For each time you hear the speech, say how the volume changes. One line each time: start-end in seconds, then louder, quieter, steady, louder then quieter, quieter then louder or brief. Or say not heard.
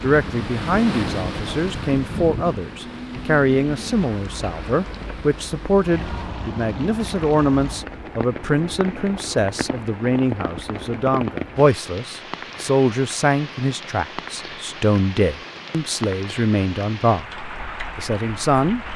0.0-18.9 steady.